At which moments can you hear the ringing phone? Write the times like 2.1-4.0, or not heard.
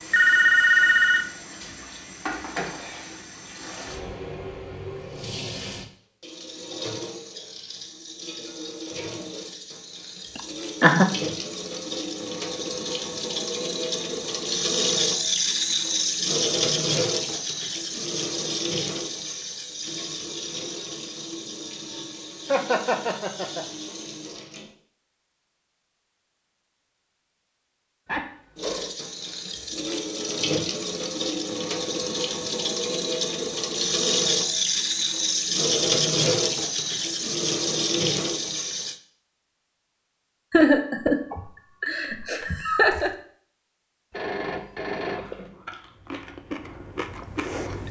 0.1-1.2, 28.1-28.9, 44.1-45.5.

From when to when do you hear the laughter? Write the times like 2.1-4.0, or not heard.
10.3-11.1, 22.4-23.6, 40.5-43.1.